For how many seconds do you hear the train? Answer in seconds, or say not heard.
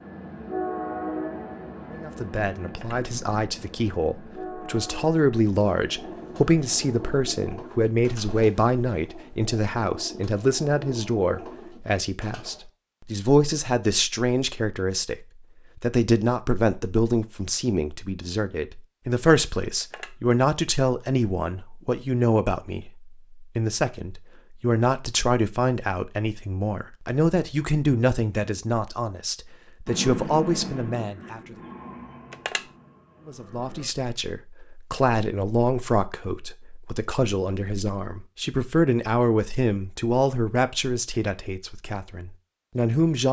11 s.